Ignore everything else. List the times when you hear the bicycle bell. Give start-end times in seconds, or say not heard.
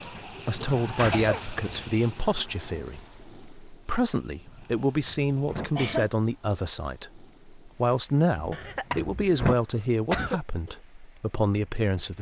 not heard.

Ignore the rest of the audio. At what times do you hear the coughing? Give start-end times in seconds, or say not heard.
0.6-1.5, 5.5-6.1, 8.5-10.4.